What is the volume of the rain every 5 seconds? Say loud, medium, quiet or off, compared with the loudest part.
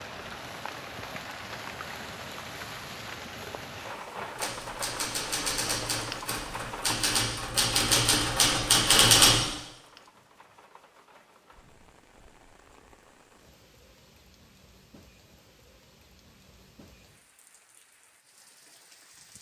loud, loud, quiet, quiet.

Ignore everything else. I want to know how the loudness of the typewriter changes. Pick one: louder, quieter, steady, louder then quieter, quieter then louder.
louder.